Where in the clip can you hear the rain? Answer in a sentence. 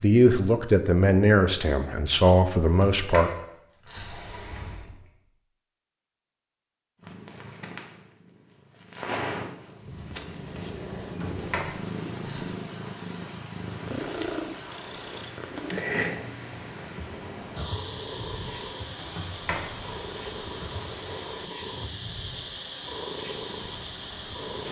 The rain can be heard from 9.8 to 24.6 s.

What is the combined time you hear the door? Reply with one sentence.
You can hear the door for 5 seconds altogether.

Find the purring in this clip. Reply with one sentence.
The purring can be heard from 7.0 to 24.6 s.